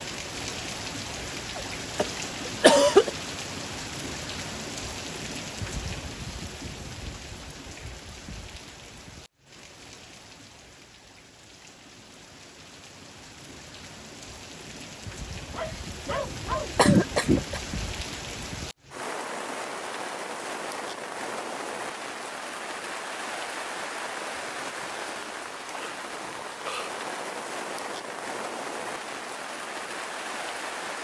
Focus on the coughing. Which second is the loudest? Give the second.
3 s.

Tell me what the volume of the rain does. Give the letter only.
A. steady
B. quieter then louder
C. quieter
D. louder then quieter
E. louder
B.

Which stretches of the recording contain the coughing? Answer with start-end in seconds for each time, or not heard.
1.6-3.1, 16.8-17.6.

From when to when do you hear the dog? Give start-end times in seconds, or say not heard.
15.5-17.1.